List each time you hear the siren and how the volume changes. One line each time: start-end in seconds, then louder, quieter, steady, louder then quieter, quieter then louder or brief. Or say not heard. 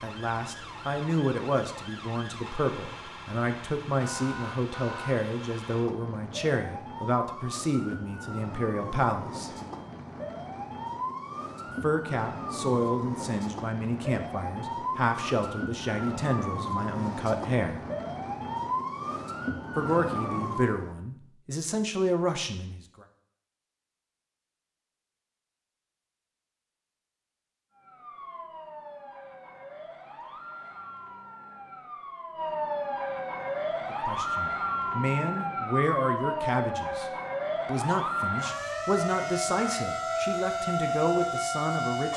0.0-20.9 louder
27.8-42.1 louder.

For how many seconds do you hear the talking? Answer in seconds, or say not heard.
27 s.